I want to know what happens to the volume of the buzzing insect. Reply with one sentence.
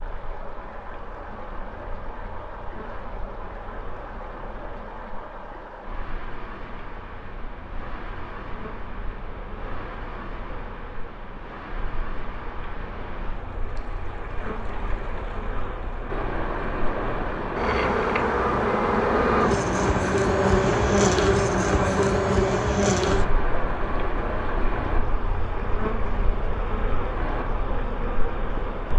The volume of the buzzing insect goes up, then down.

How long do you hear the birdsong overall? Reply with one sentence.
You can't hear the birdsong here.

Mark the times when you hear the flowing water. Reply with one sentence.
You can hear the flowing water from 0.0 to 28.9 s.